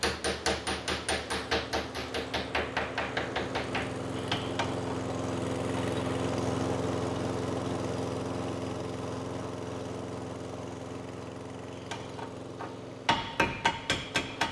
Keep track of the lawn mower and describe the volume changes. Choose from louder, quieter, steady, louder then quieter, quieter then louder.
louder then quieter.